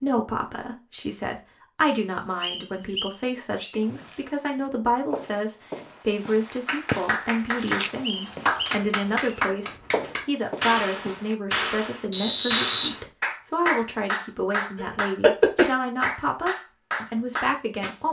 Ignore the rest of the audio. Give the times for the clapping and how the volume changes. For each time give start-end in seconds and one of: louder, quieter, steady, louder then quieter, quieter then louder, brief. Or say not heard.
6.7-18.0 steady.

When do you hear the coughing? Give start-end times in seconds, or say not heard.
14.8-15.7.